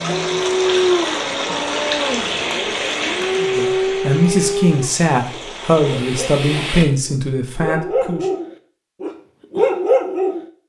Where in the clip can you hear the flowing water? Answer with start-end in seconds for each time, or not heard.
0.0-6.8.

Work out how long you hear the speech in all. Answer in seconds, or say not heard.
5 s.